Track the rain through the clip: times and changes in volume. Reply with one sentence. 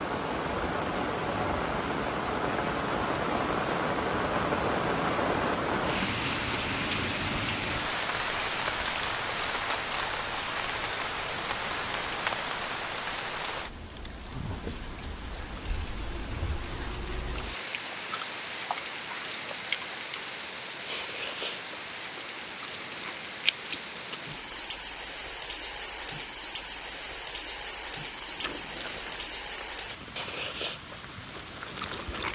You can hear the rain from 0.0 to 32.3 s, getting quieter.